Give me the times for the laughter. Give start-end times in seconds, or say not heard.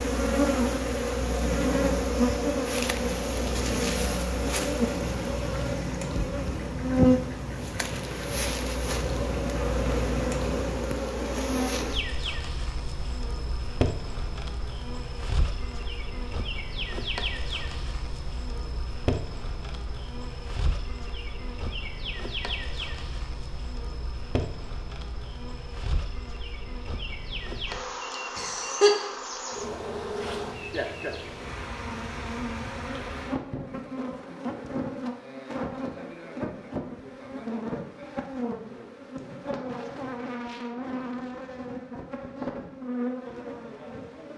28.4-28.9.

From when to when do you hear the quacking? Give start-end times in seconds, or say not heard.
5.0-10.8.